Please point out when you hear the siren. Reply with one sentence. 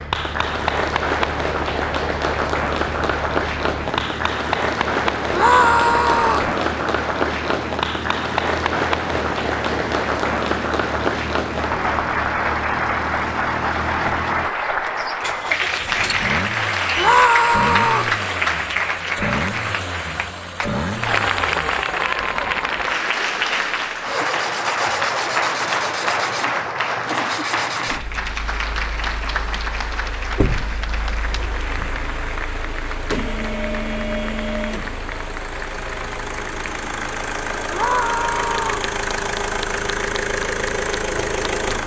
You can't hear the siren here.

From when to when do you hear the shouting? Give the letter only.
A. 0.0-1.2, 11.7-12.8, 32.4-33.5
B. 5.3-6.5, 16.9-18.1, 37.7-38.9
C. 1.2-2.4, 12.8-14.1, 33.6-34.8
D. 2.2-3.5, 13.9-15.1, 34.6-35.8
B.